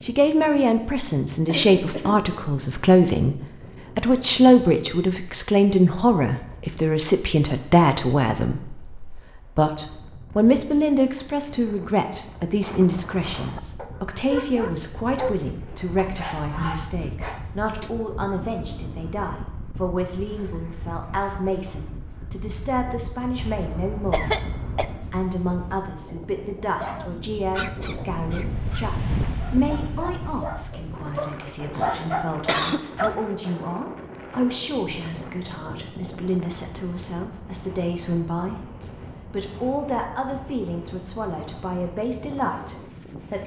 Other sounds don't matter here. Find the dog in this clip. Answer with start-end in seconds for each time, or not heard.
13.4-17.9, 26.8-33.1.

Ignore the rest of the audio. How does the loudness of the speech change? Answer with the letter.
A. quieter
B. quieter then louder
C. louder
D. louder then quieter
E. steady
A.